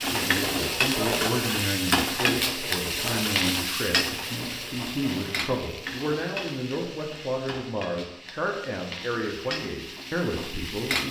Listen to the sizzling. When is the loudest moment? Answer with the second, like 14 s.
2 s.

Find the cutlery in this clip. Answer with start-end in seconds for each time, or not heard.
0.0-5.5.